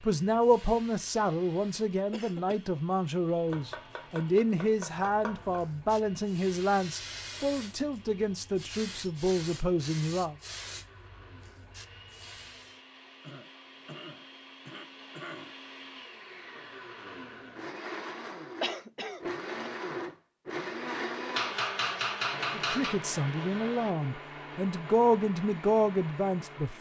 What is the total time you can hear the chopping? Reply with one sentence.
The chopping can be heard for 4 seconds in total.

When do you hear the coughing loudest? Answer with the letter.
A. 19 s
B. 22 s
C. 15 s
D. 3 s
A.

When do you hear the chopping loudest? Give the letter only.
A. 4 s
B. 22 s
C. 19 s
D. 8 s
B.